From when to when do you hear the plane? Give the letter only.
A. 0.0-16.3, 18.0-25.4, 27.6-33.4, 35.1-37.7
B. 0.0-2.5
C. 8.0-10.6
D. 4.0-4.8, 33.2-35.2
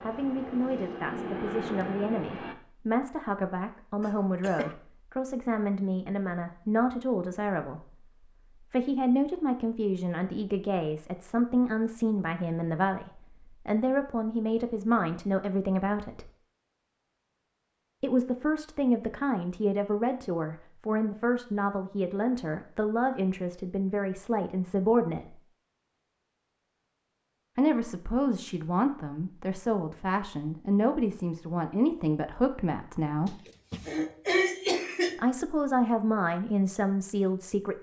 B.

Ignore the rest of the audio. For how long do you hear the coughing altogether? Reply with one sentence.
You can hear the coughing for 3 seconds altogether.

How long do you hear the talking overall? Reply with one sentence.
The talking can be heard for 32 seconds in total.